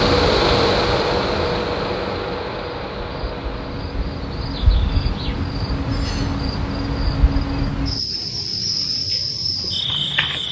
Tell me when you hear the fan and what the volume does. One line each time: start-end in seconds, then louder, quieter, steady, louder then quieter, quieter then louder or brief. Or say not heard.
0.0-7.7 quieter.